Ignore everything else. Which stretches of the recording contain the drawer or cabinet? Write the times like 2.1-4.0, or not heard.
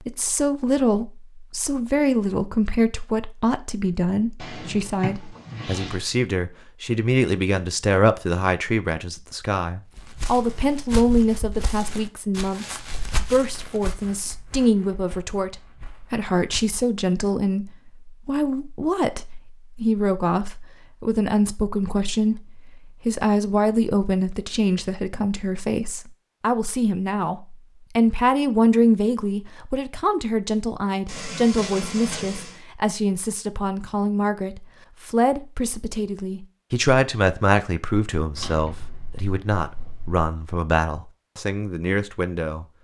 4.3-6.0, 38.4-40.2.